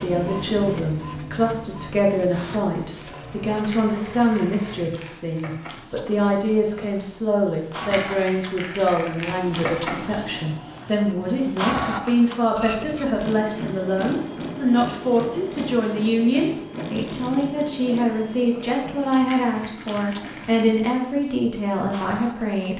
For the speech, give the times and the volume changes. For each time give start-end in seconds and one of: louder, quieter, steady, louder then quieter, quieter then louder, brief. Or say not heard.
0.0-22.7 steady.